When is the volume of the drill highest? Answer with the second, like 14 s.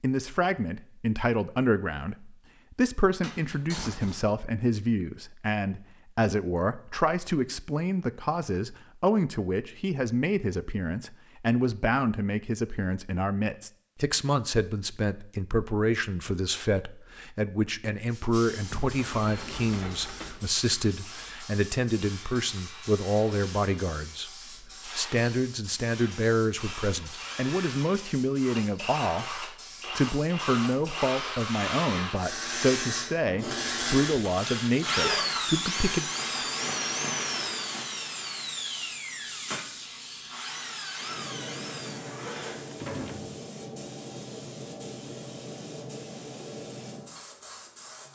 35 s.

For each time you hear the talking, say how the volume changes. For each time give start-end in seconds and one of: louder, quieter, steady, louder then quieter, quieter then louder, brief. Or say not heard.
0.0-36.1 steady.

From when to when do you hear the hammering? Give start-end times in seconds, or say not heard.
not heard.